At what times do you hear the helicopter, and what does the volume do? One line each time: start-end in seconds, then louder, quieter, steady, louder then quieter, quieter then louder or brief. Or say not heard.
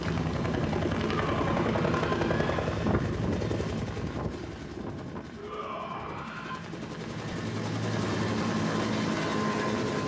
0.0-10.0 quieter then louder.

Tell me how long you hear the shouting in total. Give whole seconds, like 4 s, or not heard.
3 s.